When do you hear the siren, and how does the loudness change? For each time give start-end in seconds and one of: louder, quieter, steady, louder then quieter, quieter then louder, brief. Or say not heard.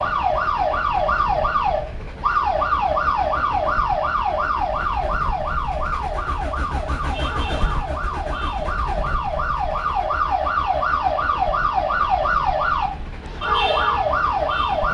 0.0-14.9 quieter then louder.